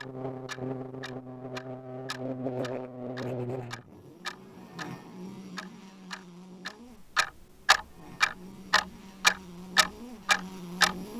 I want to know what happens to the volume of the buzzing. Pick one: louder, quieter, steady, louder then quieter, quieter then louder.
quieter then louder.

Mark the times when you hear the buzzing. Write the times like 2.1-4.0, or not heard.
0.0-11.1.